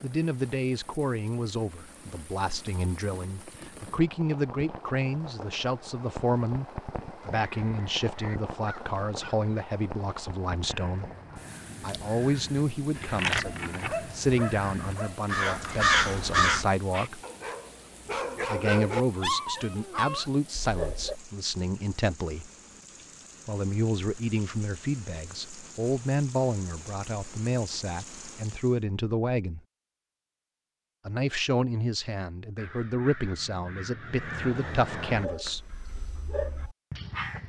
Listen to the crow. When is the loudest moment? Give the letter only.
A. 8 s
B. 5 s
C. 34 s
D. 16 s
D.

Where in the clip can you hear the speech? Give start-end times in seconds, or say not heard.
0.0-11.1, 11.8-17.2, 18.4-22.5, 23.4-29.6, 31.1-35.6.